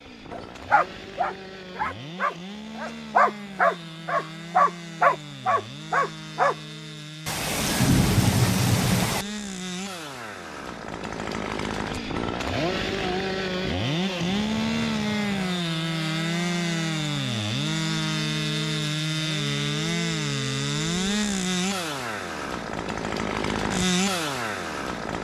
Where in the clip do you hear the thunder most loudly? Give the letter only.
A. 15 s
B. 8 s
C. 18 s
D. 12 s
B.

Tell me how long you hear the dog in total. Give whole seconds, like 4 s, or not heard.
6 s.